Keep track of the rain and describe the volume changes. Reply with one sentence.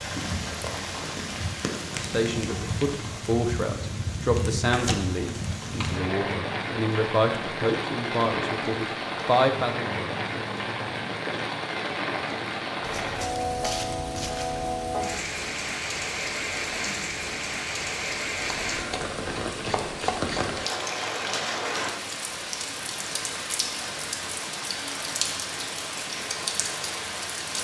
The volume of the rain stays about the same.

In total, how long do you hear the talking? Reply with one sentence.
The talking can be heard for 8 seconds in total.